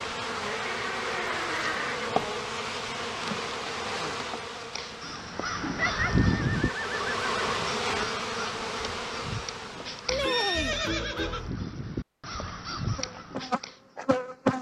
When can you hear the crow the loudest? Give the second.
6 s.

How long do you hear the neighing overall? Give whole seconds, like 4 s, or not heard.
5 s.